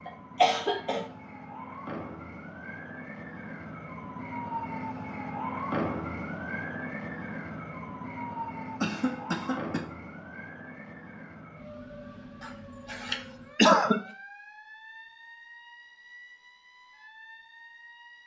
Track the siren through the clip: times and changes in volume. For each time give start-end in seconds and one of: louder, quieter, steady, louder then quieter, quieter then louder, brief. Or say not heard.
0.0-18.2 louder then quieter.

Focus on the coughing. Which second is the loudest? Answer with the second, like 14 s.
14 s.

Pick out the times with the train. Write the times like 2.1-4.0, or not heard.
not heard.